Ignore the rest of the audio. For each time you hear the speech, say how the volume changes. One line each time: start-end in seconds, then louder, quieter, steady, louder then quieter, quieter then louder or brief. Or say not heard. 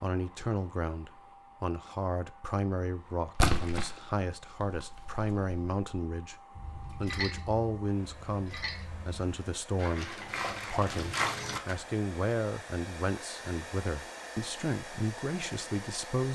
0.0-16.2 steady.